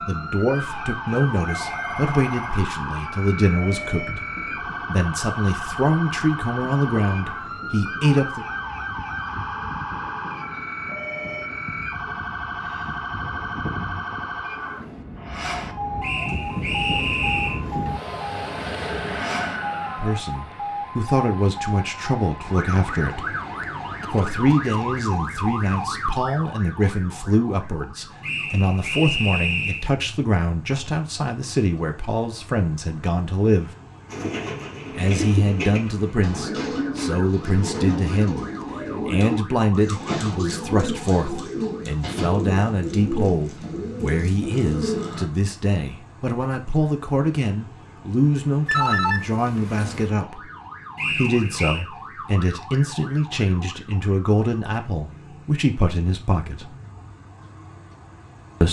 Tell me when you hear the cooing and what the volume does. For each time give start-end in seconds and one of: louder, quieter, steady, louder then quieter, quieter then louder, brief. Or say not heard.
34.0-45.2 steady.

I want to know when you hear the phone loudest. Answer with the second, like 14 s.
49 s.